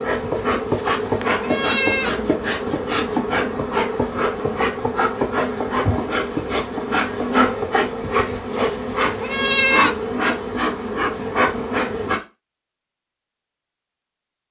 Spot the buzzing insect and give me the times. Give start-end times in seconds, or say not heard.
0.0-12.2.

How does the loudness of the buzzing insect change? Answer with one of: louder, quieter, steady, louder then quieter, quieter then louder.
steady.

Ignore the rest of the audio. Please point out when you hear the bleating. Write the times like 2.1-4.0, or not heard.
0.2-2.1, 8.0-9.9.